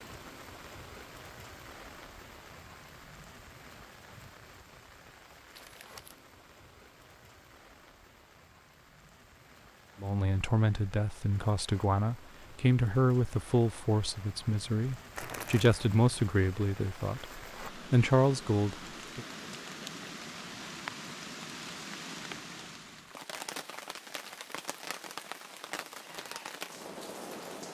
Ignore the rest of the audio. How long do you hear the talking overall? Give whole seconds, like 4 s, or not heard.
9 s.